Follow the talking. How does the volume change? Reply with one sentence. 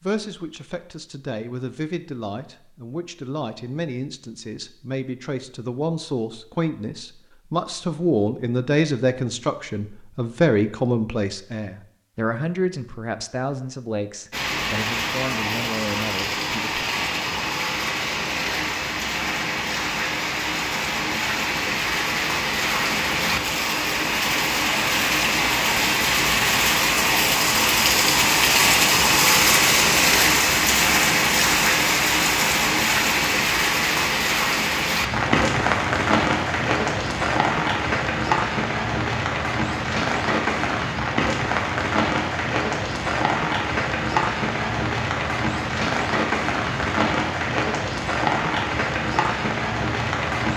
The loudness of the talking goes up, then down.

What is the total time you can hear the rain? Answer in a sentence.
The rain can be heard for 36 seconds in total.